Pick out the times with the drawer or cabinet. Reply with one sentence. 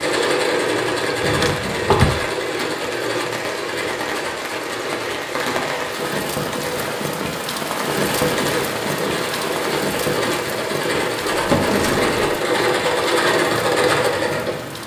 The drawer or cabinet can be heard from 1.2 to 2.1 s and from 11.3 to 12.3 s.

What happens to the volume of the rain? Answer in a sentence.
The volume of the rain goes up, then down.